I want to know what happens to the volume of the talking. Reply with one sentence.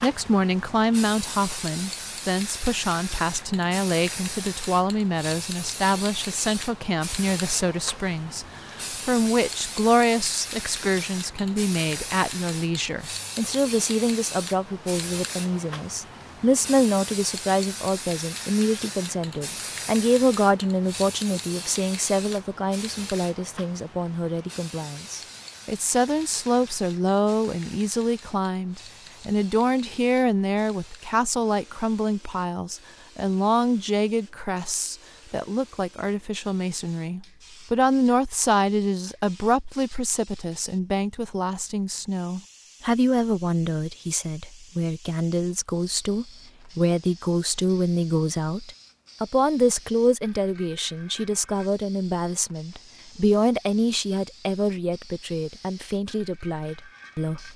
The loudness of the talking stays about the same.